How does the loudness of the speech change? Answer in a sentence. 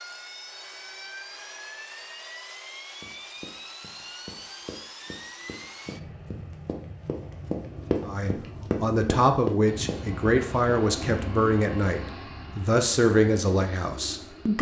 The loudness of the speech stays about the same.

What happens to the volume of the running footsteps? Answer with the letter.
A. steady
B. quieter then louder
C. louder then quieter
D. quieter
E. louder
E.